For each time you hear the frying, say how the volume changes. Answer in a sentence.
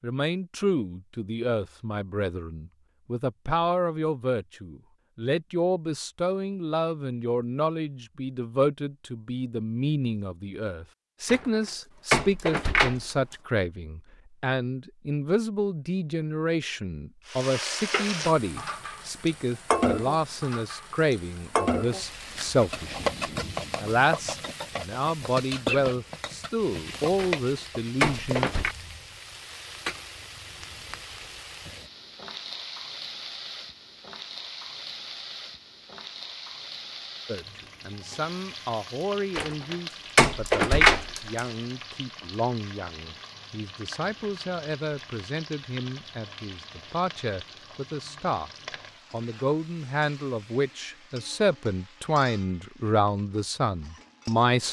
You can hear the frying from 17.2 to 54.6 s, getting quieter.